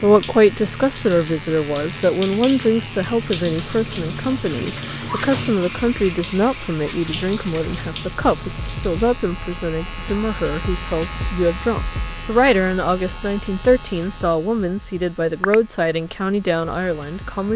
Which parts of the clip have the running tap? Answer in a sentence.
You can hear the running tap from 0.0 to 9.2 s.